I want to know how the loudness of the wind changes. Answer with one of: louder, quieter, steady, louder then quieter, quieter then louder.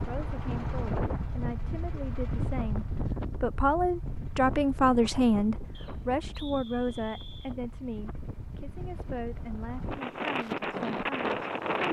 quieter then louder.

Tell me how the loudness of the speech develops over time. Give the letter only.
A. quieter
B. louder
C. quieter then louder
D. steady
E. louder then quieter
E.